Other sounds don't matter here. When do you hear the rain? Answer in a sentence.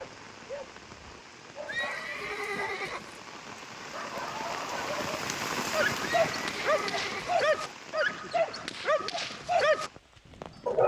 You can hear the rain from 0.0 to 10.8 s.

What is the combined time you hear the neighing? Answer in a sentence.
You can hear the neighing for 3 seconds altogether.